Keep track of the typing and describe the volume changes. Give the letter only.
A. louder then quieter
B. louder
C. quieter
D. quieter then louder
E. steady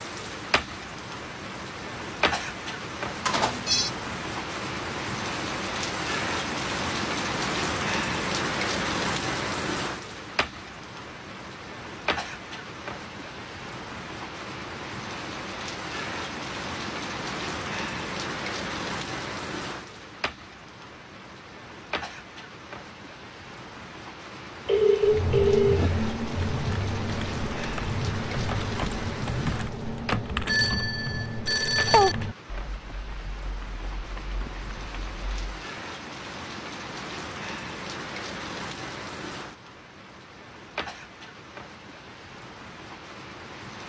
C.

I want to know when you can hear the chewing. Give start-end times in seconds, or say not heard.
not heard.